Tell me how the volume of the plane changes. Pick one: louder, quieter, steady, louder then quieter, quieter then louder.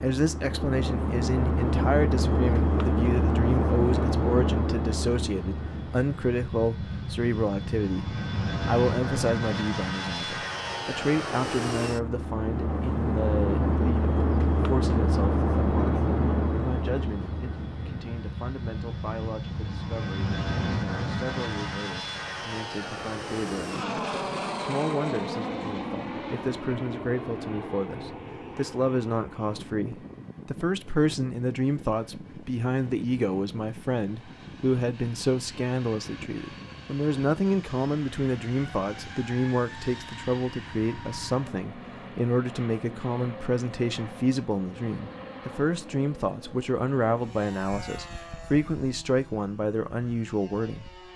quieter.